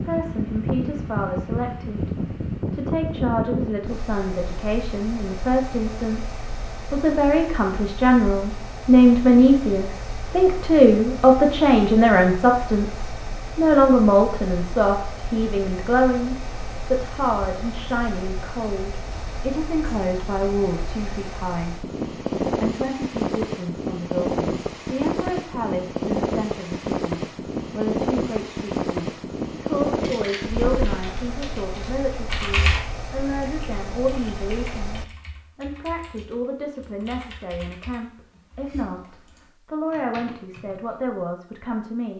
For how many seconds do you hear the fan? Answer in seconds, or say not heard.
35 s.